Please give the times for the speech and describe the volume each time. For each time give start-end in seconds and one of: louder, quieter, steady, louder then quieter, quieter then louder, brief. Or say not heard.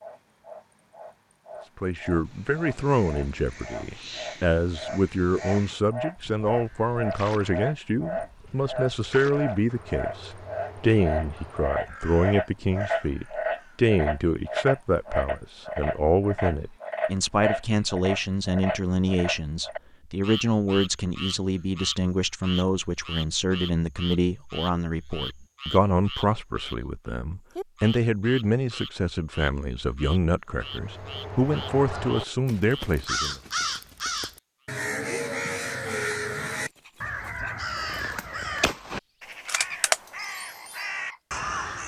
1.8-33.4 steady.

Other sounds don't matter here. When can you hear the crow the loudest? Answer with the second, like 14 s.
40 s.